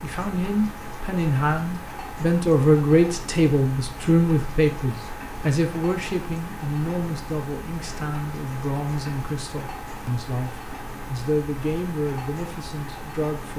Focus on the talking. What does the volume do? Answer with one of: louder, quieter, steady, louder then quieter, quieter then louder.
quieter.